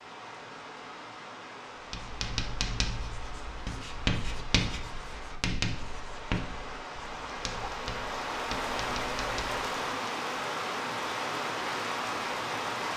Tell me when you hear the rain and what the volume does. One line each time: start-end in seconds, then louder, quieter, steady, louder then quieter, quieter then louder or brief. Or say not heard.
0.0-12.9 louder.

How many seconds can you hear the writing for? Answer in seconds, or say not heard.
8 s.